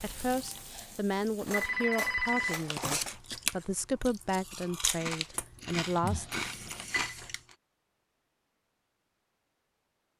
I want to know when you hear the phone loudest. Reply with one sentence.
The volume of the phone peaks at 2 seconds.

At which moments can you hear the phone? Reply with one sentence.
The phone can be heard from 0.3 to 2.6 s and from 6.0 to 7.2 s.